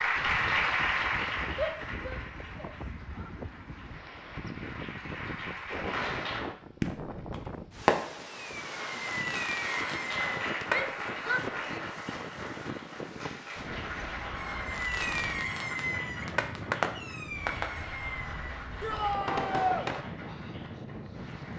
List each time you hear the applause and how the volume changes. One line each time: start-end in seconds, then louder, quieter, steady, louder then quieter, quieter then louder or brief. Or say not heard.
0.0-6.5 quieter then louder
8.5-21.5 quieter.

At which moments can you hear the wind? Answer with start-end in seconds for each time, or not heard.
0.0-21.5.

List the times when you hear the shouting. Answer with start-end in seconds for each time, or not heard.
1.6-3.3, 10.7-11.8, 18.8-19.9.